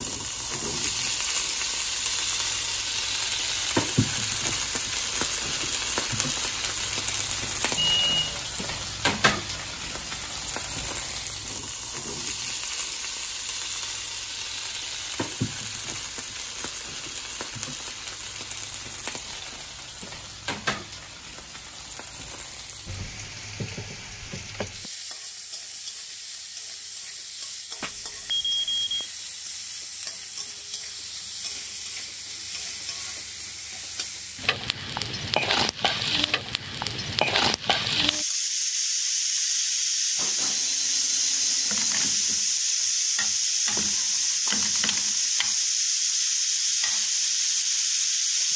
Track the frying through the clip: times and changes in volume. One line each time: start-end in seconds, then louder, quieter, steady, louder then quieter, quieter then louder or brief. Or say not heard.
0.0-48.5 quieter then louder.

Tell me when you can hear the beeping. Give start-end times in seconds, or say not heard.
7.8-8.4, 27.8-29.1, 40.4-42.0.